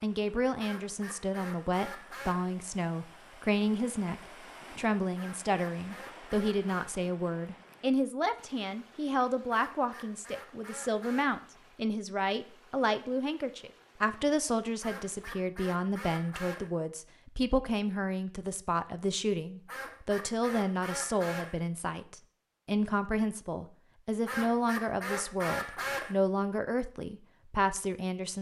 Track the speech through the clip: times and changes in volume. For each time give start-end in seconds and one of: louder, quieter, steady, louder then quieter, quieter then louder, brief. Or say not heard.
0.0-28.3 steady.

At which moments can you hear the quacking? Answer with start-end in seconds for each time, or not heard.
0.6-2.5, 5.2-6.9, 9.5-11.4, 14.8-16.7, 19.6-21.6, 24.2-26.1.